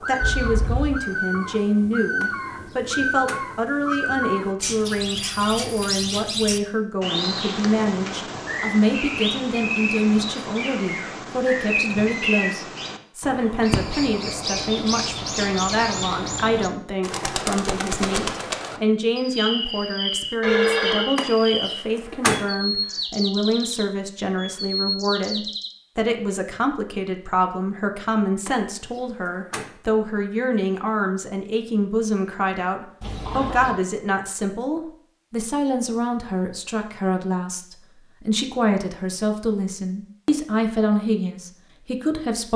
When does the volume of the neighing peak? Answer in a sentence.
The loudest moment of the neighing is at 21 seconds.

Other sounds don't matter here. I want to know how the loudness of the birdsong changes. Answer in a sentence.
The volume of the birdsong stays about the same.